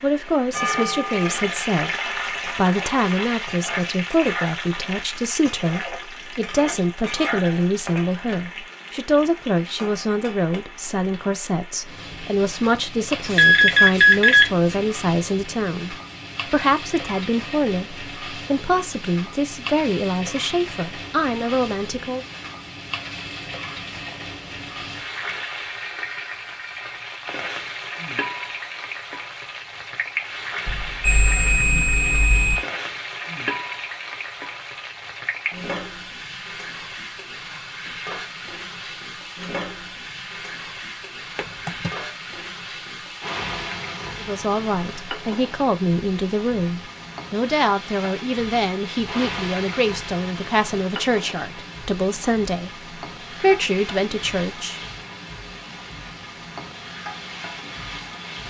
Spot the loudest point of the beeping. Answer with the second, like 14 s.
14 s.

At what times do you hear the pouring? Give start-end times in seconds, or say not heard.
not heard.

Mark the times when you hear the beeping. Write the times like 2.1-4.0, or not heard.
13.2-14.8, 30.6-32.6, 41.4-42.0.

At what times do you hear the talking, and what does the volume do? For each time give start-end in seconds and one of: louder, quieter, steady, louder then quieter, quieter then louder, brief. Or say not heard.
0.0-22.2 steady
44.2-52.7 steady
53.4-54.8 brief.